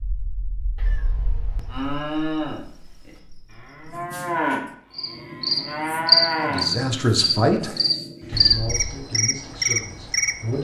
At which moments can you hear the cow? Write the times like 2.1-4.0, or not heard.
1.6-6.7.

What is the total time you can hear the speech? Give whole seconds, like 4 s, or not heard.
4 s.